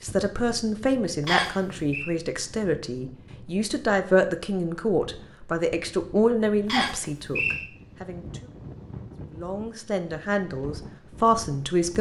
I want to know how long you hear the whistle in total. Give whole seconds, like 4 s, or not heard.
2 s.